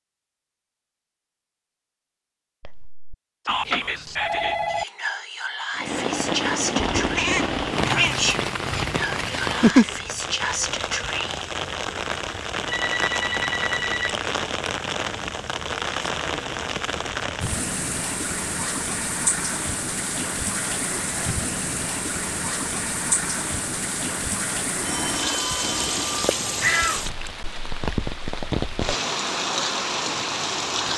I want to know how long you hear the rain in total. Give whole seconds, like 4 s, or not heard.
25 s.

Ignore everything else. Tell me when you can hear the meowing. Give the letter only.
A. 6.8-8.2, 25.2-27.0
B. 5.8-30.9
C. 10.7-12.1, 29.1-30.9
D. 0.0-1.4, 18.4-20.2
A.